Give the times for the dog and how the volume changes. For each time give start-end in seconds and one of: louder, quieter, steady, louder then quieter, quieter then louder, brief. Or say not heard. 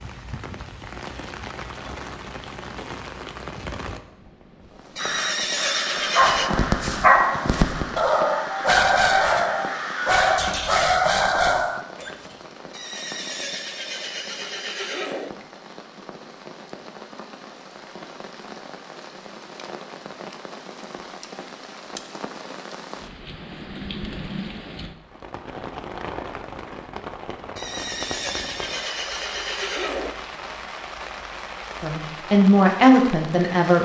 6.2-12.1 steady.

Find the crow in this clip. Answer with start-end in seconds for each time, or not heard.
5.0-10.3.